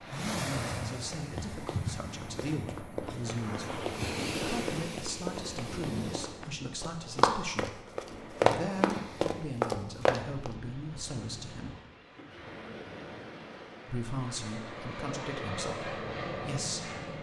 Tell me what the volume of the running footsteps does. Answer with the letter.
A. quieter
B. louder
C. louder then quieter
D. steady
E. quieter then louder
B.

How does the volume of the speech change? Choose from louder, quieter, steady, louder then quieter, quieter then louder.
steady.